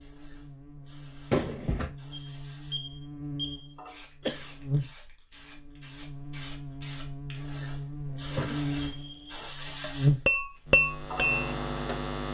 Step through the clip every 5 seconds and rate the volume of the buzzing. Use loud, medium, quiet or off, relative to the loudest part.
medium, medium, loud.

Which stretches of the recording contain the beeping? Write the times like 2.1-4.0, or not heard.
2.1-3.7, 8.8-9.5.